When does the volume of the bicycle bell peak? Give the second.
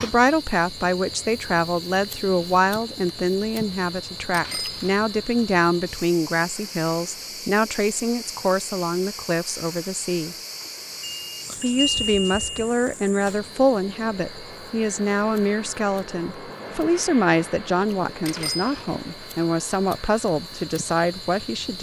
12 s.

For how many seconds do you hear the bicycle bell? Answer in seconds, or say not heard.
3 s.